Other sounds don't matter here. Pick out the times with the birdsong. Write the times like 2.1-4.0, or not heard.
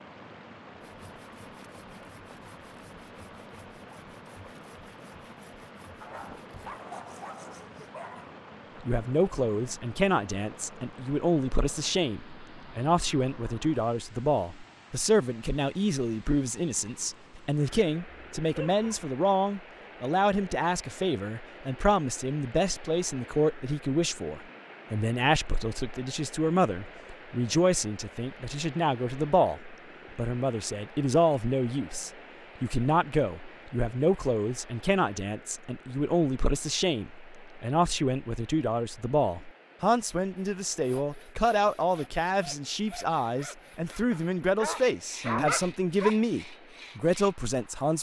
not heard.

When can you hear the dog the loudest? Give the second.
45 s.